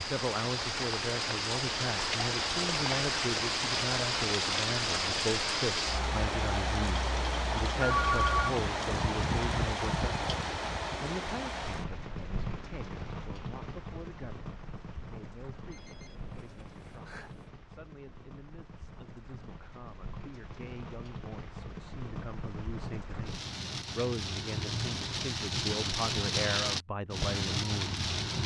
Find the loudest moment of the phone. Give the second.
8 s.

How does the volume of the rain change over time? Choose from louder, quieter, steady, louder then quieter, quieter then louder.
quieter then louder.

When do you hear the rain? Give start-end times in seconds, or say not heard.
0.0-28.4.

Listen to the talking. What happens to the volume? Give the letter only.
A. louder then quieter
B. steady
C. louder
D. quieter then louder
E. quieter
D.